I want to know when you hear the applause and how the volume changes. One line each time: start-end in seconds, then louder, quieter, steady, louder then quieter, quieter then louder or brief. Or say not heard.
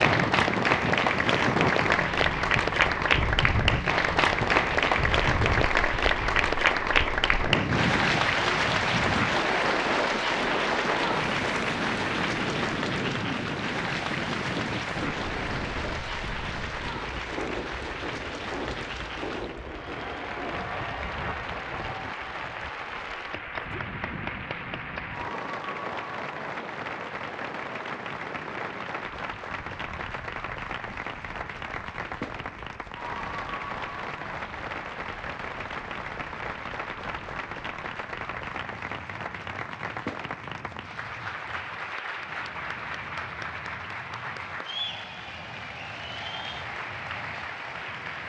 0.0-48.2 quieter.